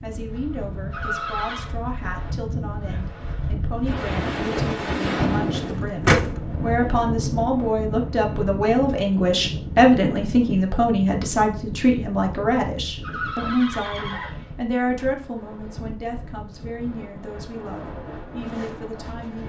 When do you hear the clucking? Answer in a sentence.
The clucking can be heard from 5.5 to 6.3 s.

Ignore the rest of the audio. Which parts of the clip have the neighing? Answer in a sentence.
You can hear the neighing from 0.9 to 1.6 s and from 13.0 to 14.5 s.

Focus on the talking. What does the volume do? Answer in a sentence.
The loudness of the talking goes up, then down.